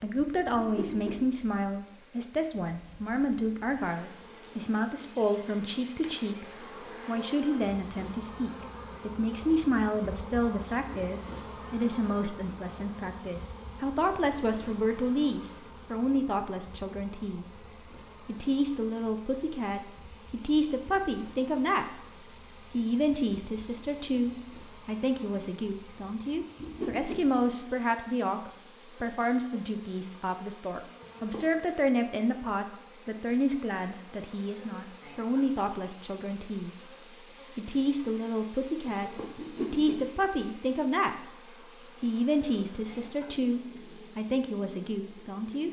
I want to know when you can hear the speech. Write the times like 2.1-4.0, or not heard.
0.0-6.5, 7.0-17.6, 18.2-22.0, 22.7-36.9, 37.5-41.3, 42.0-45.6.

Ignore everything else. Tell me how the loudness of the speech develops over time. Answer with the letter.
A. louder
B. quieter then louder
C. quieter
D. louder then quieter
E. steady
E.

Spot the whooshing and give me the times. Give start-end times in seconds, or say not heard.
0.6-1.2, 26.6-27.2, 39.4-40.0.